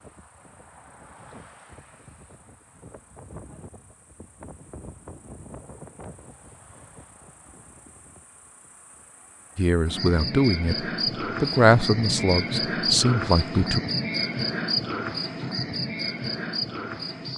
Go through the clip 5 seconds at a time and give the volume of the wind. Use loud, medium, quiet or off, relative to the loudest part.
loud, loud, off, off.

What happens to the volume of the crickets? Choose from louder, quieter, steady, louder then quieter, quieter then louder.
louder.